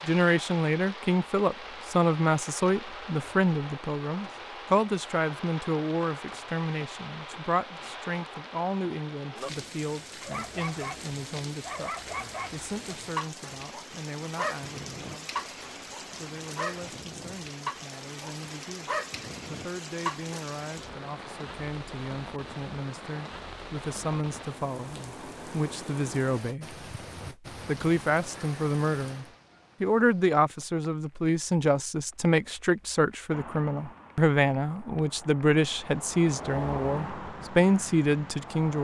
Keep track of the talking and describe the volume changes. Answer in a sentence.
The volume of the talking goes down, then up.